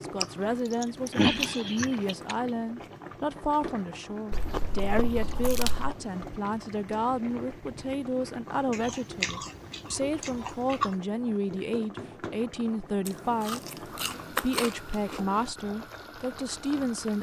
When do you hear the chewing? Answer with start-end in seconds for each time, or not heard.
0.2-2.4, 4.3-6.0, 8.7-10.9, 13.1-15.2.